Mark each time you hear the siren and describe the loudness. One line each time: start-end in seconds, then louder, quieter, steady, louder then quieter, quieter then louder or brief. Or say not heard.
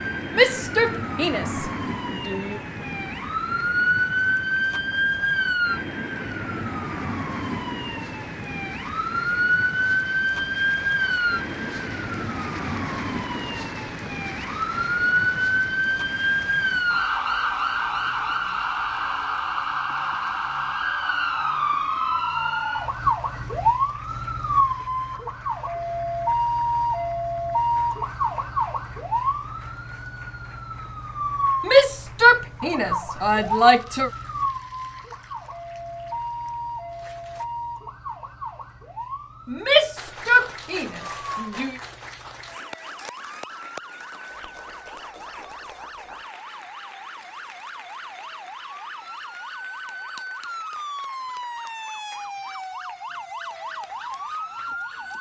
0.0-55.1 quieter.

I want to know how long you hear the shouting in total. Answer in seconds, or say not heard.
7 s.